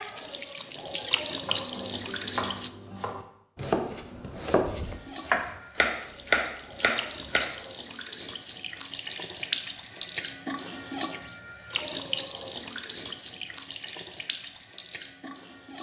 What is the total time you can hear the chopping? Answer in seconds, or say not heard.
6 s.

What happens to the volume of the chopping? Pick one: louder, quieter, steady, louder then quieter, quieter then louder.
louder.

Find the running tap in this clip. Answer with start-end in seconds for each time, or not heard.
0.0-2.7, 4.8-15.7.